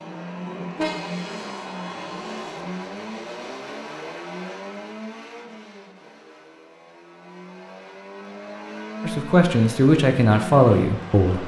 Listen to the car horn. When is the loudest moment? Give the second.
1 s.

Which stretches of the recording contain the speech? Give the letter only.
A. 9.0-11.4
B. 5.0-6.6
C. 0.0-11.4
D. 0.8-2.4
A.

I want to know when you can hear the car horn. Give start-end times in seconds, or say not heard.
0.8-2.4.